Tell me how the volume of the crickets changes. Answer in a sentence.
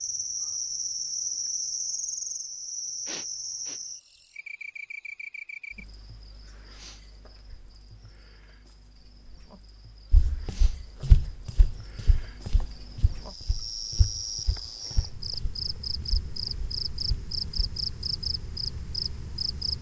The volume of the crickets goes down, then up.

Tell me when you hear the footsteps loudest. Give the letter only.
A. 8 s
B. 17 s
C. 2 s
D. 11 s
D.